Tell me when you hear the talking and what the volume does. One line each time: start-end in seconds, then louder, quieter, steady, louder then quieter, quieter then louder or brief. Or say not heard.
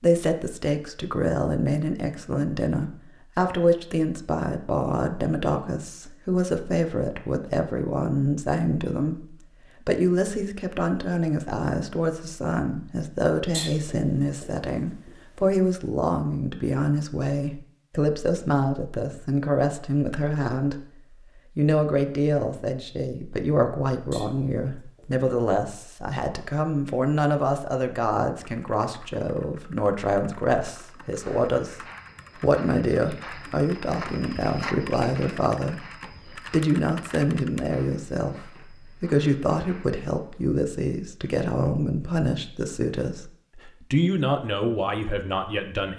0.0-20.9 steady
21.6-45.9 steady.